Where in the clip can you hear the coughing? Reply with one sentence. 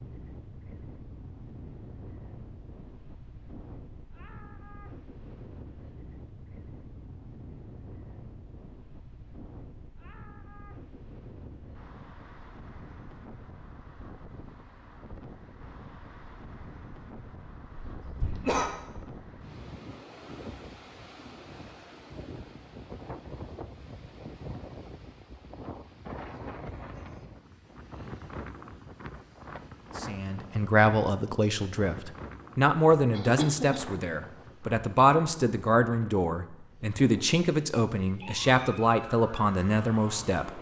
The coughing can be heard from 17.8 to 18.7 s and from 33.1 to 33.8 s.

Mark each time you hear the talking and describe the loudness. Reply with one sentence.
You can hear the talking from 30.0 to 40.5 s, at a steady volume.